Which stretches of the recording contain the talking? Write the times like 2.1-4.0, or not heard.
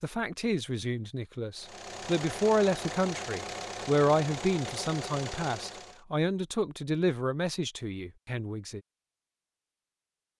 0.0-8.8.